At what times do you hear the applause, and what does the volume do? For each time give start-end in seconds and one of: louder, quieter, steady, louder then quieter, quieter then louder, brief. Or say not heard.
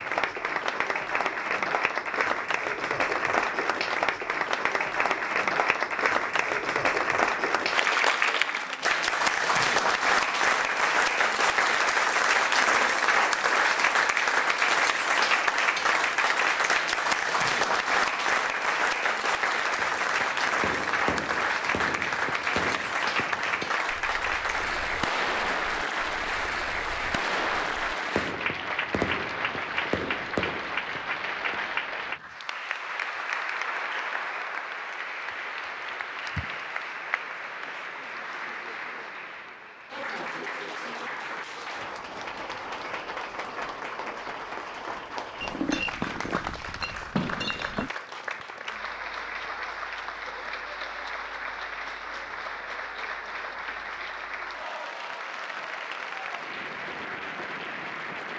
0.0-58.3 quieter.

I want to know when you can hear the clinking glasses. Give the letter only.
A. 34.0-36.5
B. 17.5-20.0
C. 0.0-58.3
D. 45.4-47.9
D.